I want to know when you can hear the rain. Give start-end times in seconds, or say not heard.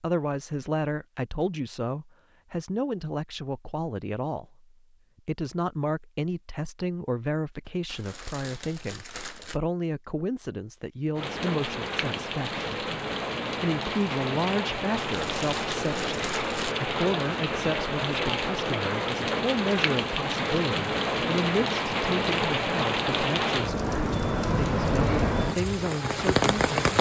11.2-26.9.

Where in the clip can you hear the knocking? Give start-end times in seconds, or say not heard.
not heard.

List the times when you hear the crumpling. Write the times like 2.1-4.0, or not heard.
7.7-9.6, 14.9-16.8.